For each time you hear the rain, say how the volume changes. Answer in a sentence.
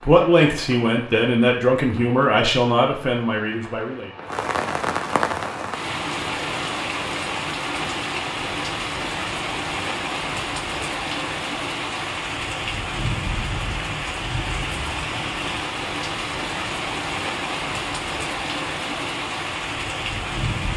You can hear the rain from 0.0 to 20.7 s, getting louder.